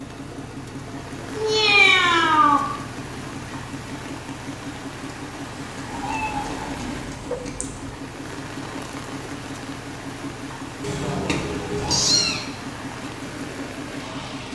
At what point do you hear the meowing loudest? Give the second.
2 s.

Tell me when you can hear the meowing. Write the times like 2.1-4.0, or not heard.
1.4-2.6, 6.0-7.9, 10.8-12.4.